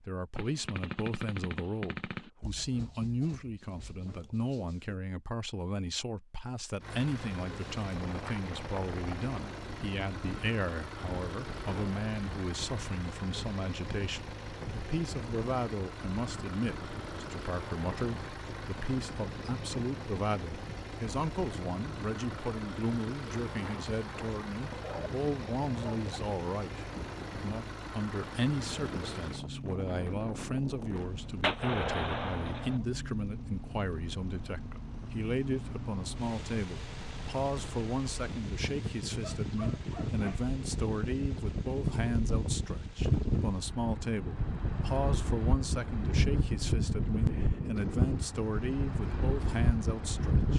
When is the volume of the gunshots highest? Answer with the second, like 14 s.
32 s.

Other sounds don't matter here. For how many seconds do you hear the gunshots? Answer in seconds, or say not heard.
3 s.